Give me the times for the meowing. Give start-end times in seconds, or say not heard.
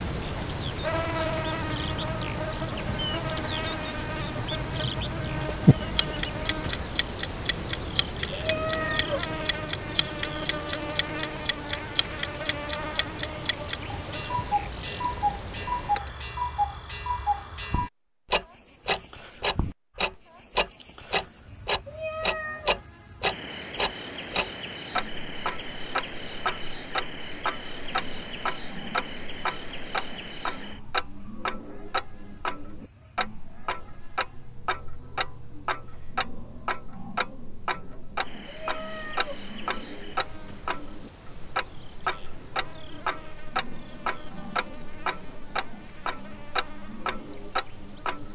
8.3-9.2, 21.9-22.9, 38.5-39.5.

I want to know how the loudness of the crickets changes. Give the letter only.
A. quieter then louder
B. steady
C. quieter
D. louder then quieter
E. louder
C.